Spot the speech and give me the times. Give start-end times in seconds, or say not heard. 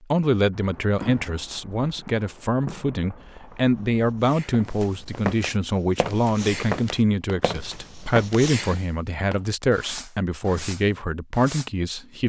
0.1-12.2.